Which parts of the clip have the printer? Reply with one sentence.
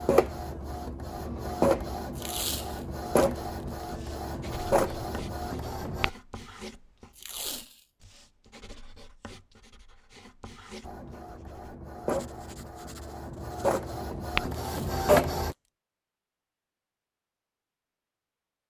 The printer can be heard from 0.0 to 6.1 s and from 10.8 to 15.6 s.